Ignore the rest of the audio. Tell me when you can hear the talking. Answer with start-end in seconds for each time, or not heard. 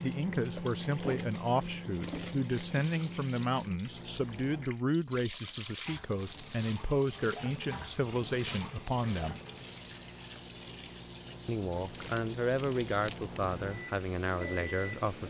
0.0-9.3, 11.4-15.2.